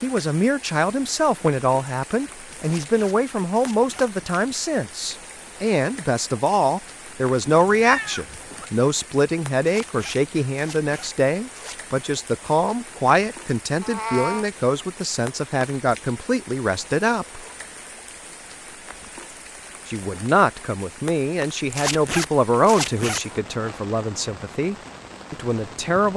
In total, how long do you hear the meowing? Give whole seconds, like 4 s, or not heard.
2 s.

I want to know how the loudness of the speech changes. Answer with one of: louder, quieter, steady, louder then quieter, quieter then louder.
steady.